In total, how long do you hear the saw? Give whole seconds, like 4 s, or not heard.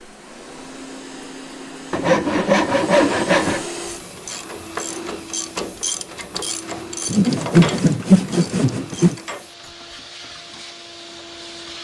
4 s.